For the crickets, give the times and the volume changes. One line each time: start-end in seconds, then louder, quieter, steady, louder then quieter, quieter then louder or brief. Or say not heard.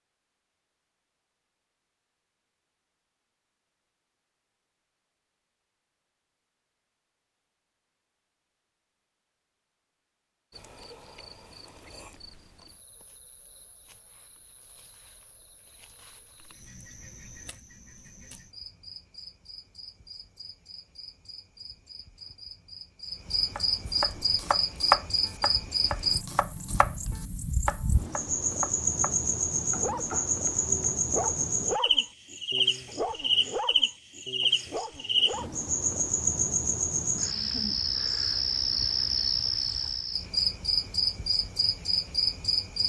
10.5-42.8 louder.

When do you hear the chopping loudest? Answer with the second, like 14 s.
25 s.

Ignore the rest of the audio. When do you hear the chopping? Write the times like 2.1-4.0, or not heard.
23.6-31.4.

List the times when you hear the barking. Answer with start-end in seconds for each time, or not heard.
29.6-35.6.